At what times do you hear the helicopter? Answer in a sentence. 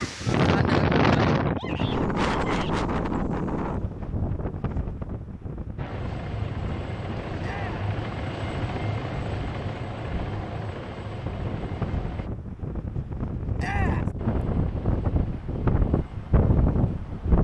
The helicopter can be heard from 5.8 to 12.3 s and from 14.2 to 17.3 s.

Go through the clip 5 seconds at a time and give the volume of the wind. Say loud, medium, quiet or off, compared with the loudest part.
loud, quiet, medium, loud.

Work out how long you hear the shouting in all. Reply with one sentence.
You can hear the shouting for 2 seconds altogether.